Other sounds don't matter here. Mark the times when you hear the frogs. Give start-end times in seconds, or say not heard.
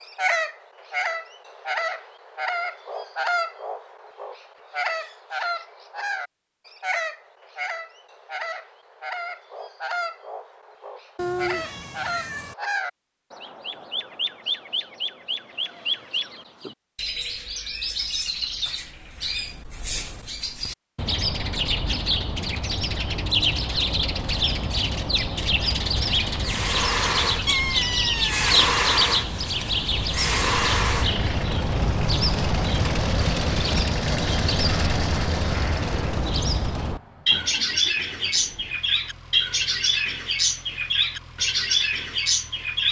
not heard.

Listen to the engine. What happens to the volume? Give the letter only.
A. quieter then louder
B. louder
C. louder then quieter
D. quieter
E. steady
D.